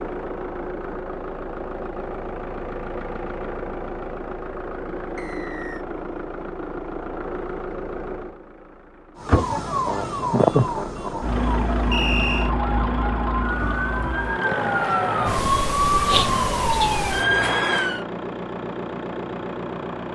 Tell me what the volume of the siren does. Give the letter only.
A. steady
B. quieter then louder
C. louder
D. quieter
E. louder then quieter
B.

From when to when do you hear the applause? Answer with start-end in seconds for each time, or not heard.
not heard.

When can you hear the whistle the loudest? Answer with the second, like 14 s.
12 s.